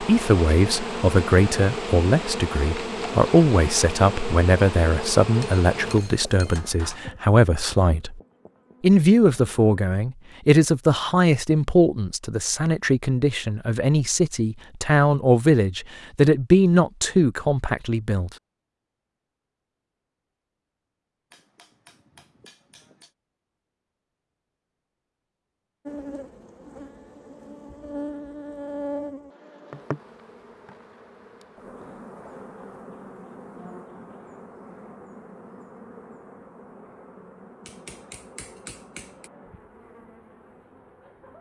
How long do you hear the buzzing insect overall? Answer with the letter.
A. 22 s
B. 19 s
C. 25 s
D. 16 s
C.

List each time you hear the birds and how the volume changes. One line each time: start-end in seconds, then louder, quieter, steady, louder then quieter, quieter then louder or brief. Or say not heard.
not heard.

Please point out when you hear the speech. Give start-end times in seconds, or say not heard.
0.0-8.2, 8.8-18.3.